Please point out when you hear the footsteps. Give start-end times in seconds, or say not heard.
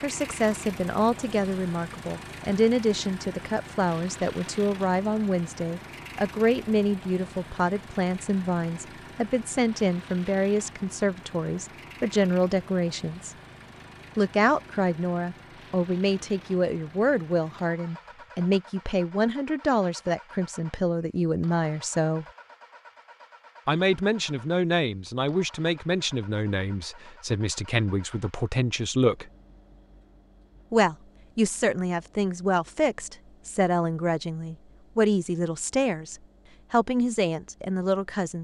not heard.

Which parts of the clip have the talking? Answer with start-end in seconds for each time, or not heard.
0.0-13.3, 14.2-22.2, 23.6-29.3, 30.7-38.3.